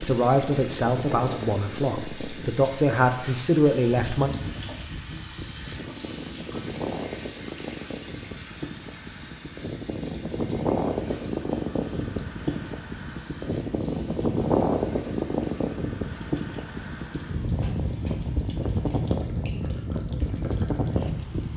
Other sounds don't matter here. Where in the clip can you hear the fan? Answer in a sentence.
You can hear the fan from 0.0 to 21.5 s.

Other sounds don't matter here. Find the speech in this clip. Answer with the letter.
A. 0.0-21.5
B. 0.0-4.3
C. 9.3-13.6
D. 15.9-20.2
B.